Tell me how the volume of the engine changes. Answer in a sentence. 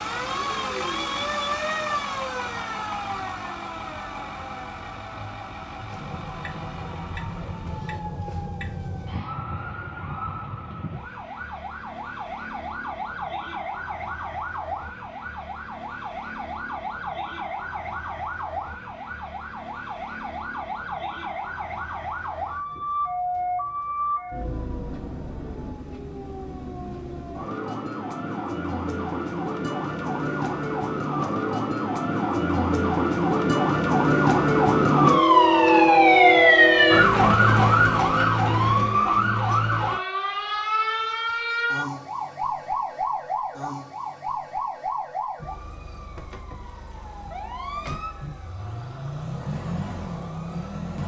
The volume of the engine goes down.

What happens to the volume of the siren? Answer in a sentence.
The volume of the siren goes up, then down.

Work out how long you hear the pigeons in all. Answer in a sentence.
You can't hear the pigeons here.